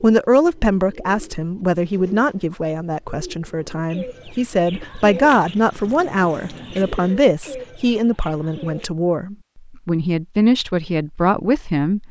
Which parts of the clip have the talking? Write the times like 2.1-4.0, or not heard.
0.0-12.0.